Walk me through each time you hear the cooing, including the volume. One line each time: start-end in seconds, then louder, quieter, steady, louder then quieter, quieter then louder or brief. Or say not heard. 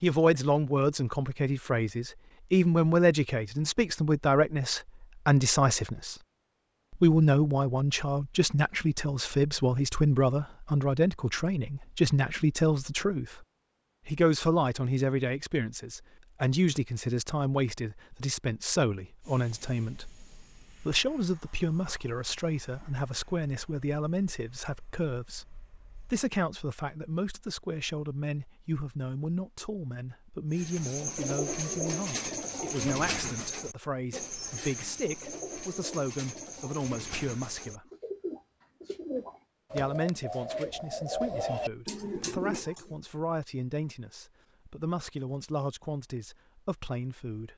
30.5-43.0 quieter then louder.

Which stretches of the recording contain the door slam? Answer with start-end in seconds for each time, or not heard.
not heard.